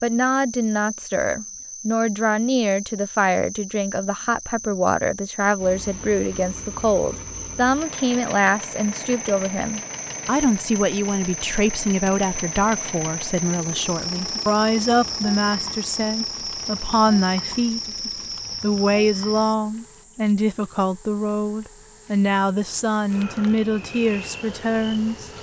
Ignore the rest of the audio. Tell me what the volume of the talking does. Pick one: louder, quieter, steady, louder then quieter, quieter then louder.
steady.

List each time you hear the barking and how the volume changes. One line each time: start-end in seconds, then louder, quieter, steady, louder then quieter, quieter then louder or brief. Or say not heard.
not heard.